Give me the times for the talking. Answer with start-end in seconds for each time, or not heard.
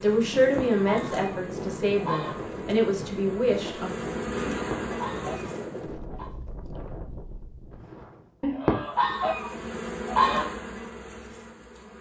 0.0-3.9.